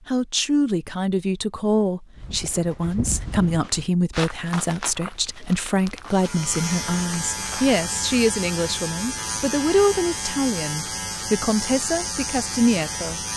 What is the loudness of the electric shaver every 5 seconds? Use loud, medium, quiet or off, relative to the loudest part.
off, loud, loud.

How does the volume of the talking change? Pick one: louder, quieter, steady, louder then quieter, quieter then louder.
steady.